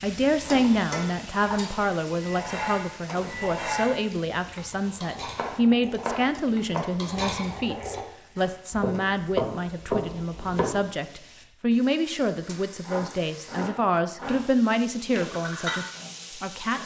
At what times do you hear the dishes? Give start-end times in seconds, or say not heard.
2.0-8.7.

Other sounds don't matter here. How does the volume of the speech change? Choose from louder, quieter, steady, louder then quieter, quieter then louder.
steady.